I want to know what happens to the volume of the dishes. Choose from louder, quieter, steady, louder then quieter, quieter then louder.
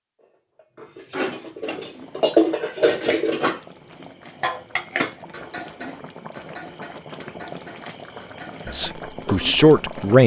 quieter.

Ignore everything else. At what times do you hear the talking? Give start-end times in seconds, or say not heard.
8.7-10.2.